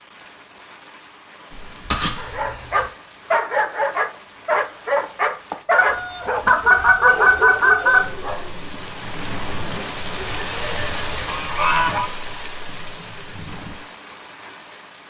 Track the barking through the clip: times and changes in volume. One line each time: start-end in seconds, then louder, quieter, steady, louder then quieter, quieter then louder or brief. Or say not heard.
2.1-8.7 quieter.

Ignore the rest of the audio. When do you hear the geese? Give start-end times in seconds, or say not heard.
1.5-2.8, 5.8-8.0, 10.2-12.1.